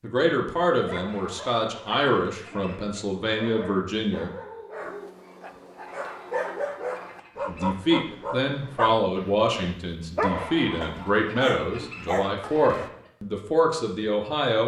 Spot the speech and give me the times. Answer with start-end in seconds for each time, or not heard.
0.0-4.3, 7.5-14.6.